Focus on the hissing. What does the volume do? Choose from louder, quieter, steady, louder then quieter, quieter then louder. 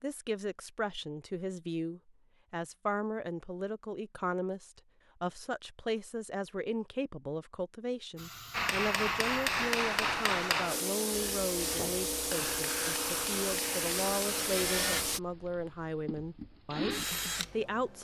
louder.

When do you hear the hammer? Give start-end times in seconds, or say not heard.
8.5-14.5.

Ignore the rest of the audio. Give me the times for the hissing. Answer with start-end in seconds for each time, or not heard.
8.2-15.2.